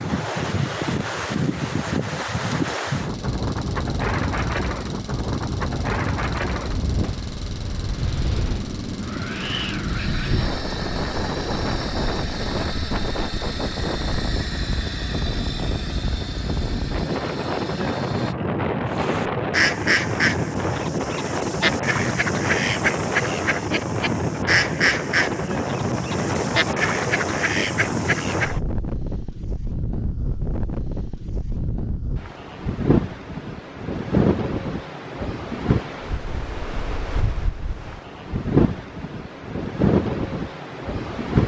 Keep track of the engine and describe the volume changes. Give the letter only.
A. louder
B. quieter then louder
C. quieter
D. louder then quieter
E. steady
E.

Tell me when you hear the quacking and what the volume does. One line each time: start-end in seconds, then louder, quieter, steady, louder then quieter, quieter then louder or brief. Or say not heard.
18.9-28.6 steady.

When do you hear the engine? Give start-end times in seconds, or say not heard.
3.0-18.4.